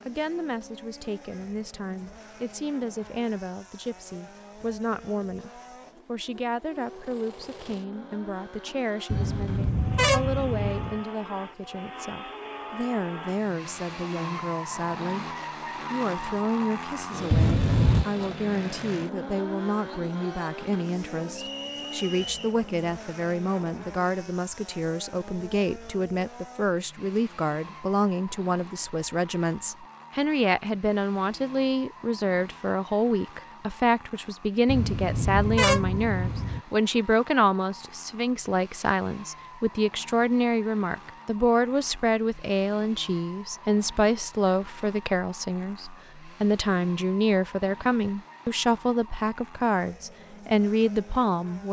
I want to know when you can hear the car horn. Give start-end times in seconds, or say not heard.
9.1-11.0, 17.3-18.1, 34.6-36.6.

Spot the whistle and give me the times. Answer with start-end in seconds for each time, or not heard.
21.4-22.6.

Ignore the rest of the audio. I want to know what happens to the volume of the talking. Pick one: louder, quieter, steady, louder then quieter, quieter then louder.
louder.